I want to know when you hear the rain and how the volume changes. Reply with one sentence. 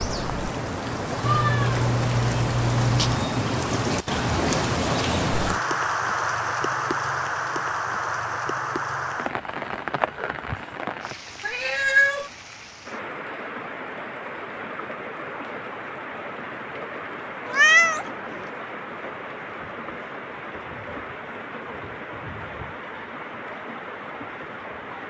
You can hear the rain from 0.0 to 25.0 s, getting quieter.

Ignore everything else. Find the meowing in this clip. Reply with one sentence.
The meowing can be heard from 1.2 to 3.1 s, from 11.4 to 12.3 s and from 17.4 to 18.4 s.